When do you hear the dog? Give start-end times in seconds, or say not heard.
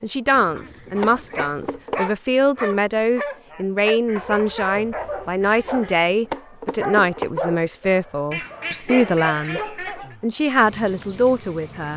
0.9-10.1.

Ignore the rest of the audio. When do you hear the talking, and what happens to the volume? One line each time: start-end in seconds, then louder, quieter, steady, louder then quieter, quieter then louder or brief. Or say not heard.
0.0-11.9 steady.